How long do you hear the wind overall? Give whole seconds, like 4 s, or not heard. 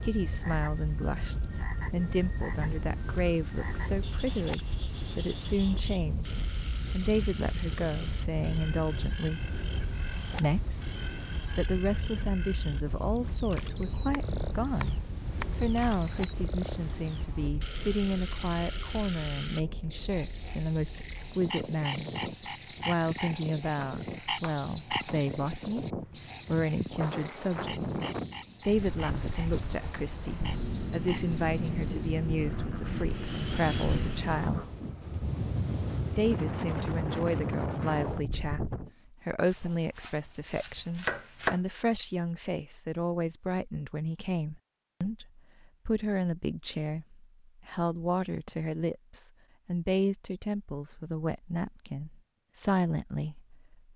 39 s.